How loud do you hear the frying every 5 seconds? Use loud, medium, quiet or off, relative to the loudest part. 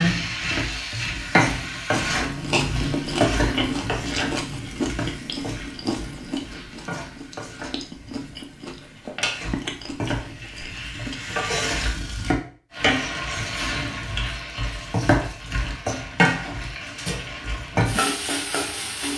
loud, medium, loud, loud.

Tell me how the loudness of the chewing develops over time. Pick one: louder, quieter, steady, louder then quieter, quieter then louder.
quieter.